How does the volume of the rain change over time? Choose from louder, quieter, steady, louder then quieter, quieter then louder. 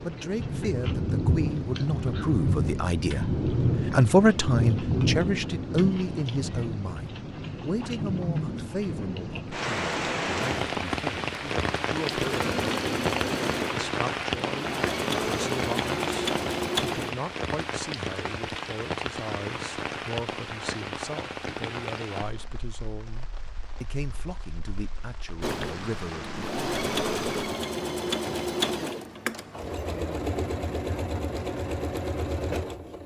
quieter.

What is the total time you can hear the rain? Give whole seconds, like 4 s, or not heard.
27 s.